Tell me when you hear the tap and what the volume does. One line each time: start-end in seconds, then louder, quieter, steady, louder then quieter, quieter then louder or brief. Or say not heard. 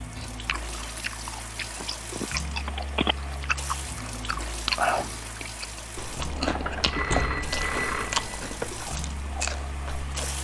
0.0-10.3 steady.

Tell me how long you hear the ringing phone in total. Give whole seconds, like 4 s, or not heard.
4 s.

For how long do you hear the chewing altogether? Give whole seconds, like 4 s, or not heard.
10 s.